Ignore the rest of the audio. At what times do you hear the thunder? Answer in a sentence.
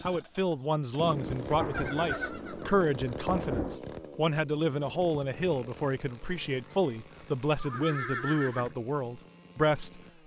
The thunder can be heard from 1.1 to 3.8 s.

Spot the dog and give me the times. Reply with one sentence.
You can't hear the dog here.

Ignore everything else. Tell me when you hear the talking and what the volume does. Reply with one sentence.
You can hear the talking from 0.0 to 10.2 s, at a steady volume.